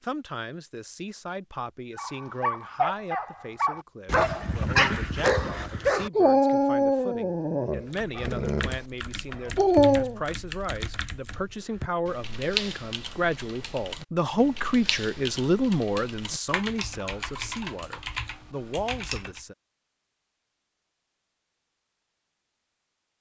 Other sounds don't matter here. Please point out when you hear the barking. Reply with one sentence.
You can hear the barking from 1.9 to 10.2 s.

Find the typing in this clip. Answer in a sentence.
You can hear the typing from 7.8 to 19.4 s.